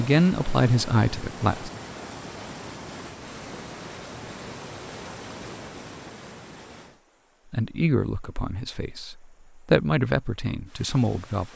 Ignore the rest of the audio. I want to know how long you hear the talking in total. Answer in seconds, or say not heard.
6 s.